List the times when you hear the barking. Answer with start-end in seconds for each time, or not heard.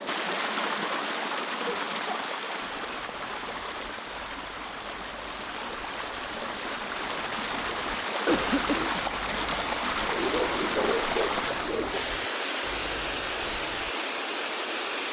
10.1-12.0.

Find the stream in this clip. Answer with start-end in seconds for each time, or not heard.
0.0-15.0.